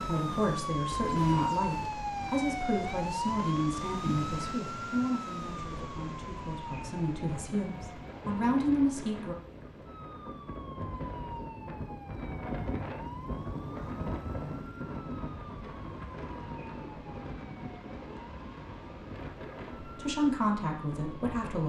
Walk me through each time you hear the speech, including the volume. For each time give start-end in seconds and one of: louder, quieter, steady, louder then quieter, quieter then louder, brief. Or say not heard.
0.1-9.3 quieter then louder
19.8-21.6 brief.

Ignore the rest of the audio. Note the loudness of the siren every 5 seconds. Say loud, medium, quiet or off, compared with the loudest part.
loud, medium, quiet, quiet, quiet.